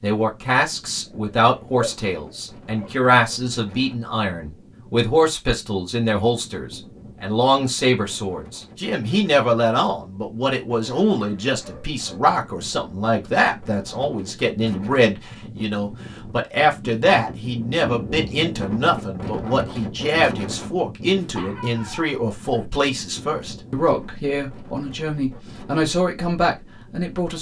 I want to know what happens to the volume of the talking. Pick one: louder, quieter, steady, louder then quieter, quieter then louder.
steady.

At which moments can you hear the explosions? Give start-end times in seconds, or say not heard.
not heard.